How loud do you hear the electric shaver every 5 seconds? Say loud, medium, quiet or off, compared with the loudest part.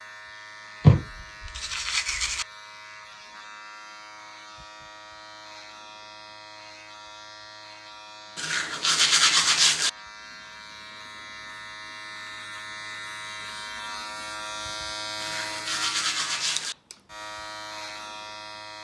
medium, medium, loud, loud.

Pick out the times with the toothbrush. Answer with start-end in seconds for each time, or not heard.
0.8-2.5, 8.3-9.9, 15.2-16.8.